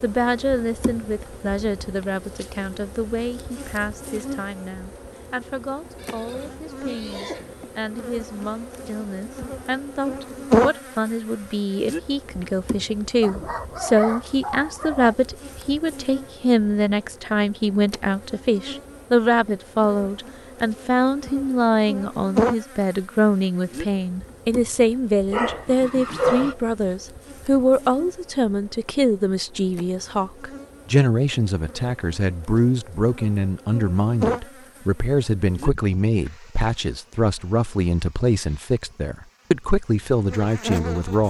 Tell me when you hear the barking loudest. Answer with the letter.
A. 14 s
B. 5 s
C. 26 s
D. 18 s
C.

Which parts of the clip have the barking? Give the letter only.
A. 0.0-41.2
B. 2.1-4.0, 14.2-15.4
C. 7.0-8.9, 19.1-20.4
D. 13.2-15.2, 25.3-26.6
D.